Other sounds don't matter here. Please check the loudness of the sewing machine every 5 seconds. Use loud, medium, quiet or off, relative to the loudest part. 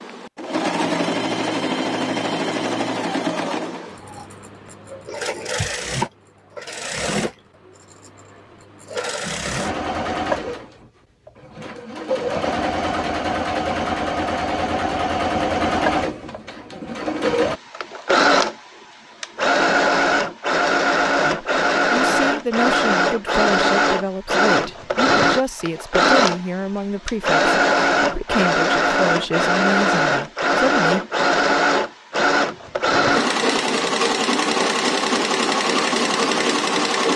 medium, medium, medium, loud, loud, loud, loud, loud.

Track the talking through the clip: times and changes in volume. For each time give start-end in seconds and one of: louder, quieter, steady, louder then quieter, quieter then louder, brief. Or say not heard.
21.2-31.1 steady.